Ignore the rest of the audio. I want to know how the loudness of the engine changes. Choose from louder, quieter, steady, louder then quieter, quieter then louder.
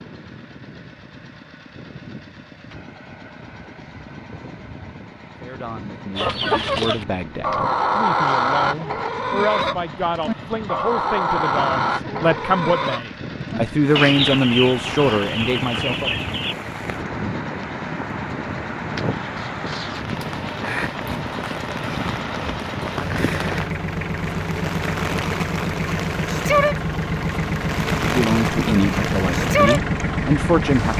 louder.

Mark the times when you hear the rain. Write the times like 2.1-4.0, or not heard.
14.1-30.9.